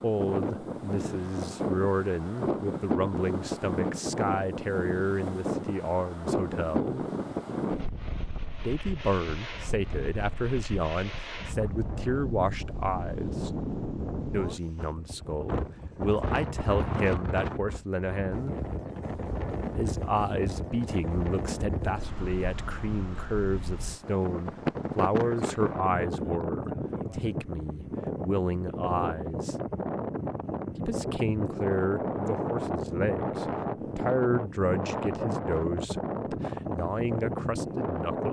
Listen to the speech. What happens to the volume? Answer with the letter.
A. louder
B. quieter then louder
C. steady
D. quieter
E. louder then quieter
C.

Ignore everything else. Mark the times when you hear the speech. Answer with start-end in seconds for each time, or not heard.
0.0-7.0, 8.6-13.6, 14.3-18.6, 19.8-29.6, 30.8-38.2.